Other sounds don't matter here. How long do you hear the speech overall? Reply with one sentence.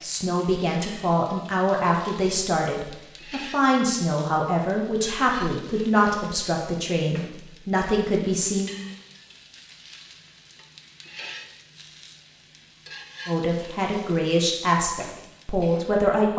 The speech can be heard for 12 seconds in total.